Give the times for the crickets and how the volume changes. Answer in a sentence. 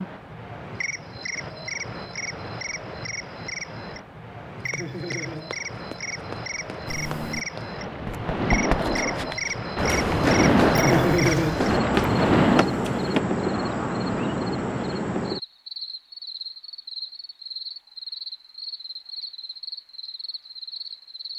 The crickets can be heard from 0.0 to 21.3 s, getting louder then quieter.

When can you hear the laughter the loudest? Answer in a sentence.
The volume of the laughter peaks at 11 seconds.